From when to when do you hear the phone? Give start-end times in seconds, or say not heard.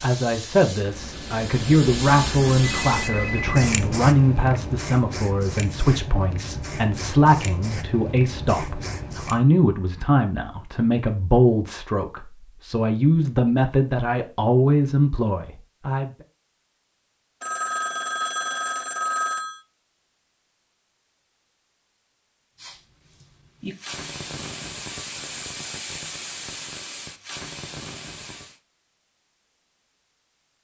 2.8-4.0, 17.4-19.6.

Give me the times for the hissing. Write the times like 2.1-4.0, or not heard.
0.0-9.4, 22.6-28.6.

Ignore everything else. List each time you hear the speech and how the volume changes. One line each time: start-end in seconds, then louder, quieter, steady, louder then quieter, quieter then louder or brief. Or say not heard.
0.0-16.1 steady.